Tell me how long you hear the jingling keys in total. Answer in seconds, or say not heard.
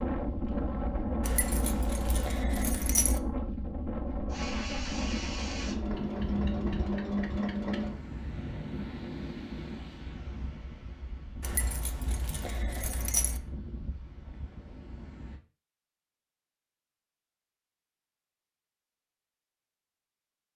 4 s.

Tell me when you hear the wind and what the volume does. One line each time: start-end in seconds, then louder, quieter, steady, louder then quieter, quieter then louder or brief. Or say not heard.
0.0-15.4 quieter.